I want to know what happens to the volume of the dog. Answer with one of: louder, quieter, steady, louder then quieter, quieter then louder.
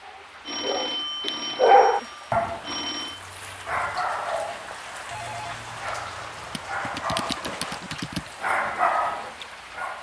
quieter then louder.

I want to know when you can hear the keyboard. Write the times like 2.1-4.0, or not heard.
6.3-8.3.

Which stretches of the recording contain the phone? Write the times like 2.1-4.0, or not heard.
0.5-3.2, 5.1-7.2.